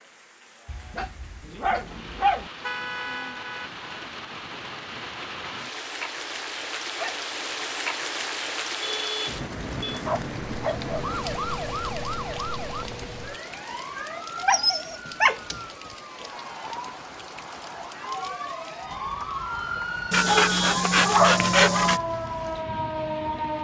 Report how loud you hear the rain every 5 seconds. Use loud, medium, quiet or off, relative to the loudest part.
medium, loud, medium, medium, medium.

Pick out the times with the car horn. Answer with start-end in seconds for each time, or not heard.
2.6-3.9, 8.8-10.0, 20.2-20.9.